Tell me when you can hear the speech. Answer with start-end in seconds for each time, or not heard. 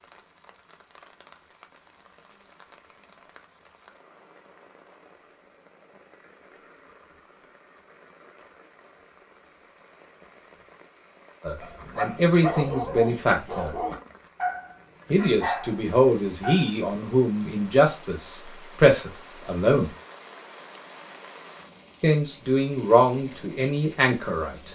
11.4-13.8, 15.1-19.9, 22.0-24.6.